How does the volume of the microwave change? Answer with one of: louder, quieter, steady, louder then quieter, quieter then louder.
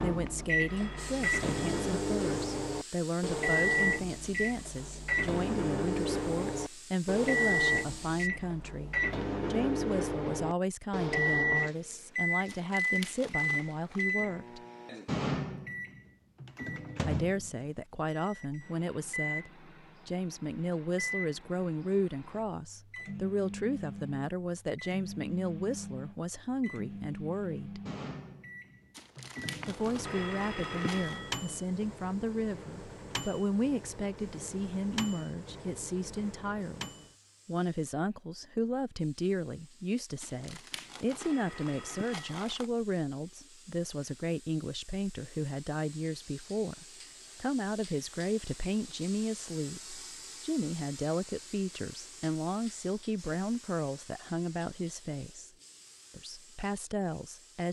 quieter.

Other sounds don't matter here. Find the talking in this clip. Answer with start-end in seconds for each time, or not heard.
0.0-14.6, 17.0-27.8, 29.6-55.5, 56.1-57.6.